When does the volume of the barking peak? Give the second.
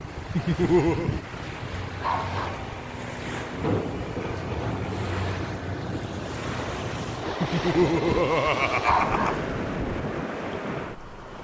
9 s.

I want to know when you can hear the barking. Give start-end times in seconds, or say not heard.
2.0-2.6, 8.8-9.4.